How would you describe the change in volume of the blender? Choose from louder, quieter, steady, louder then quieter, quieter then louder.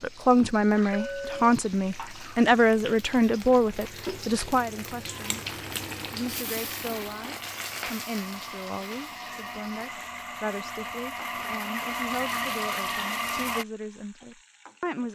louder.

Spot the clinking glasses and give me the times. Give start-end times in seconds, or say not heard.
0.9-1.5.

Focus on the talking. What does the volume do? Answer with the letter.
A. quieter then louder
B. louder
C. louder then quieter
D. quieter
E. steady
D.